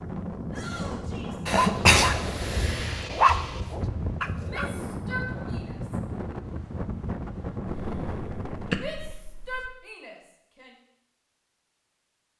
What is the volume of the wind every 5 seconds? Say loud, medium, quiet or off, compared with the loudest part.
loud, loud, off.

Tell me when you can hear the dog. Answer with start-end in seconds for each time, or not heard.
1.6-4.7.